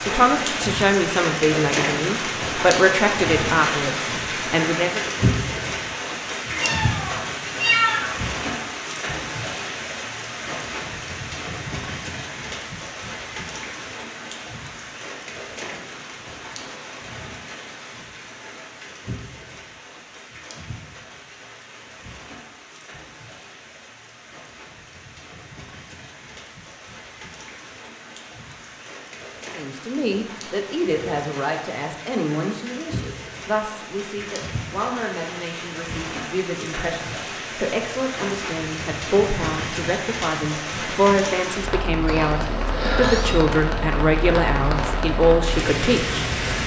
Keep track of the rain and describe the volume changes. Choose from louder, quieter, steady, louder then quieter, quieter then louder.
quieter then louder.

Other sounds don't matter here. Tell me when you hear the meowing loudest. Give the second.
8 s.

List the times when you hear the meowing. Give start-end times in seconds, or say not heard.
6.5-8.2, 42.0-43.5.